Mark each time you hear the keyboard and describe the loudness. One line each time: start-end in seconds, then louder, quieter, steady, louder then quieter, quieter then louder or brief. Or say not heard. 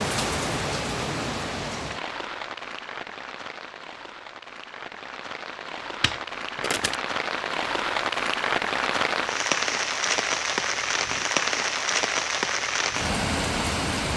not heard.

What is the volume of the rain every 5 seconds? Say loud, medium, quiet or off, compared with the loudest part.
medium, loud, loud.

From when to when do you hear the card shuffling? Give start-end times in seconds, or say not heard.
6.0-7.0.